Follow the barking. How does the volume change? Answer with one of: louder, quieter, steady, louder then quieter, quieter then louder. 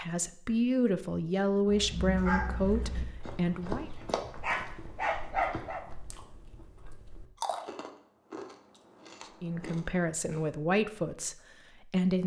quieter then louder.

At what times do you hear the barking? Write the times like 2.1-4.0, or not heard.
1.6-5.8.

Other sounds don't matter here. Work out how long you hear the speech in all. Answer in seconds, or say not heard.
7 s.